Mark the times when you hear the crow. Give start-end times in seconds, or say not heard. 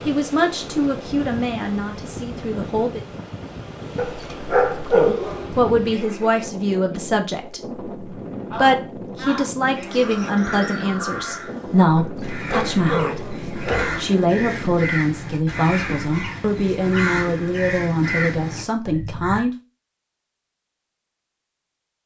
8.5-19.4.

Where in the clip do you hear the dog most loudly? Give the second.
5 s.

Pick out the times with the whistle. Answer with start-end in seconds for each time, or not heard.
not heard.